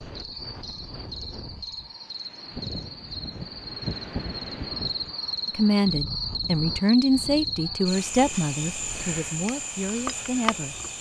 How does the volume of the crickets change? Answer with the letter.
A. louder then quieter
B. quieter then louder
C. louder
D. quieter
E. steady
C.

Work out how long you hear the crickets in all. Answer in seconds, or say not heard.
11 s.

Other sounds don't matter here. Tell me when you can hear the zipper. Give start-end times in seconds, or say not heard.
not heard.